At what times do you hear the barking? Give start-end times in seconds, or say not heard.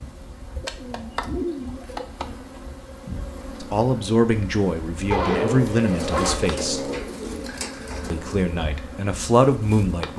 5.1-7.0.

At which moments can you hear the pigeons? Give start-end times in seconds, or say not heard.
0.6-2.0, 5.8-8.4.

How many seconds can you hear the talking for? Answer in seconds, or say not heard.
5 s.